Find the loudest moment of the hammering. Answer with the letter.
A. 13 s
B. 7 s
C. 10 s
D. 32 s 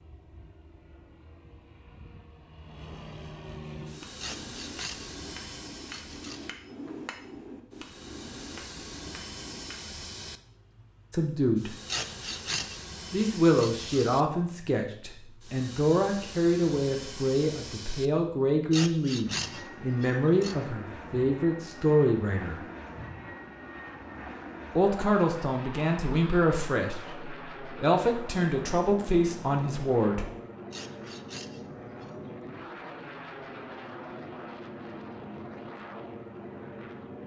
B.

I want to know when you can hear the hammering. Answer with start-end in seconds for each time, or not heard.
3.9-9.8.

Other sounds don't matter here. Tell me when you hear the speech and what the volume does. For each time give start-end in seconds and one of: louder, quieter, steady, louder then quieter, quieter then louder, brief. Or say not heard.
11.1-11.8 brief
13.1-22.6 steady
24.8-30.2 steady.